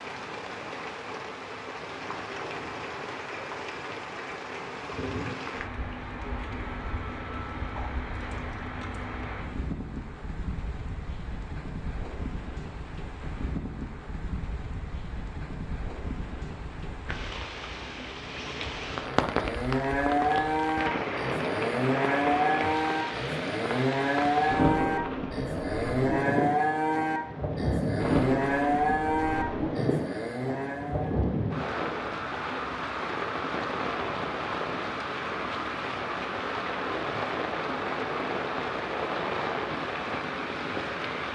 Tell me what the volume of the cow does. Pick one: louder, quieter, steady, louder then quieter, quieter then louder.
steady.